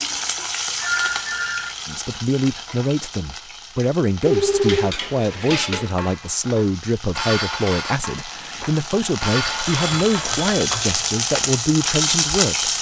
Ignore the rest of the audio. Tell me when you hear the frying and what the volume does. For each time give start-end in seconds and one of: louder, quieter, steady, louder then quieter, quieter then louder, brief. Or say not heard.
0.0-12.7 quieter then louder.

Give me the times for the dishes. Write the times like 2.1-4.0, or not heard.
4.2-10.9.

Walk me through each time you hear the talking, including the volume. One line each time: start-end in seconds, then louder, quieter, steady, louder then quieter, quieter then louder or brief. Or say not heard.
1.9-12.7 steady.